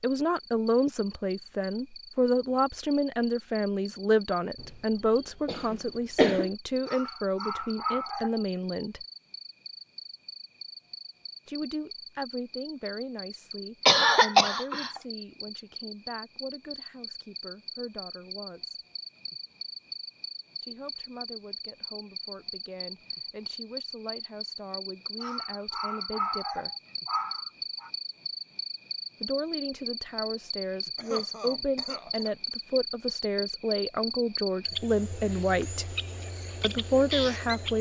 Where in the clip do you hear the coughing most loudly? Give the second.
14 s.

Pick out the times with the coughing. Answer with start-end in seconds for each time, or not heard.
5.5-6.5, 13.8-15.0, 30.9-32.4.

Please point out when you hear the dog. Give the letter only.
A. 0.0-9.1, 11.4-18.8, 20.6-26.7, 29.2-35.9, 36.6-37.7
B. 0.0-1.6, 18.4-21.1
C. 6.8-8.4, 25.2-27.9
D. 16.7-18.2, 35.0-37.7
C.